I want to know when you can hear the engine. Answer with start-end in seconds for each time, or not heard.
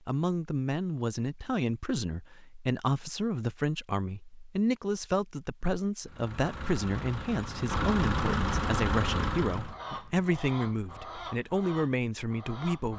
6.0-9.8.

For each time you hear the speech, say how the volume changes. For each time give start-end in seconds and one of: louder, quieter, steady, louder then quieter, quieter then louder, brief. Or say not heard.
0.1-12.9 steady.